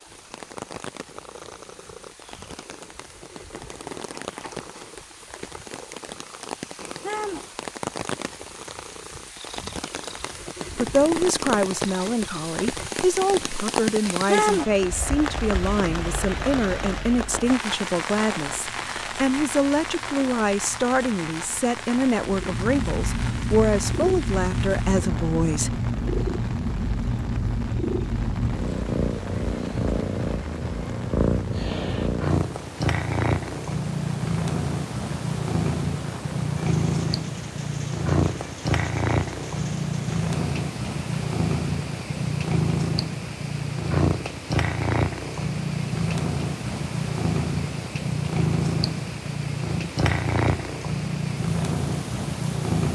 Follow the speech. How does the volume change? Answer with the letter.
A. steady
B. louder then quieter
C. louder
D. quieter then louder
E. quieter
A.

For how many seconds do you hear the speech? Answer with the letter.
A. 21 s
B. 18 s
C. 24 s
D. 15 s
D.